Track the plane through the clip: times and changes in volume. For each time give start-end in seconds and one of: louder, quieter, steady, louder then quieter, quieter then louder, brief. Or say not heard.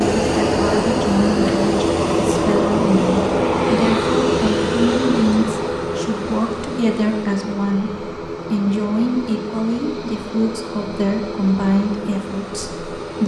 0.0-13.2 quieter.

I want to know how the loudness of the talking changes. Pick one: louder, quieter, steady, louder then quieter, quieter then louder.
steady.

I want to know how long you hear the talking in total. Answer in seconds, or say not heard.
13 s.